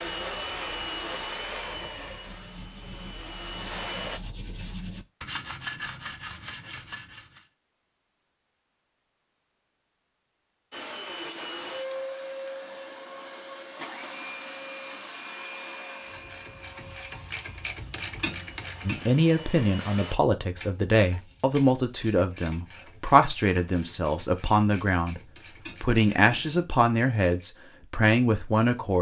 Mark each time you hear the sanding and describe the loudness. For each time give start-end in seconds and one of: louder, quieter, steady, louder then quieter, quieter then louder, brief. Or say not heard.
0.0-7.5 louder.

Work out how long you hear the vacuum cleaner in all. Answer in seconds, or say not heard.
14 s.